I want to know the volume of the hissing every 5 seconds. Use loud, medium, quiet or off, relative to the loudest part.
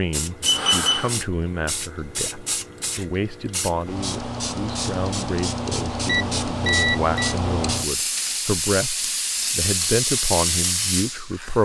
medium, loud, loud.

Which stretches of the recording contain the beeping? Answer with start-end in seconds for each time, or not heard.
0.4-1.2, 6.0-7.3.